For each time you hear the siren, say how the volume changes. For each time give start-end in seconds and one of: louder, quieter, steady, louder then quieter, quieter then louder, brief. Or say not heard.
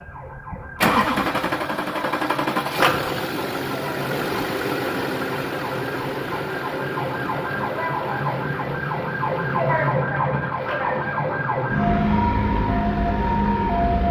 0.0-14.0 louder.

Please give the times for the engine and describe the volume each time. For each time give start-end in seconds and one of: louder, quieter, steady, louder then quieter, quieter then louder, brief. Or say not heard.
0.2-14.0 quieter.